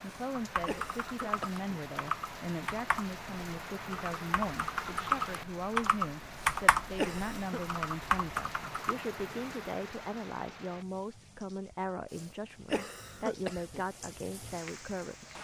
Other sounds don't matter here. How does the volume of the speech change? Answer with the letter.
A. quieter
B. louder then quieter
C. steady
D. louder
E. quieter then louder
C.